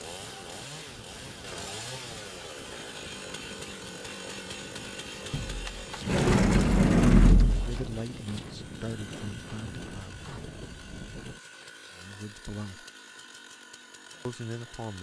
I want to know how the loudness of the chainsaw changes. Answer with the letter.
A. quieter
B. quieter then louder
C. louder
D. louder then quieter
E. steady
A.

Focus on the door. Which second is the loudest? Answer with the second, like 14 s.
7 s.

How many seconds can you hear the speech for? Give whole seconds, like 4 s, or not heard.
4 s.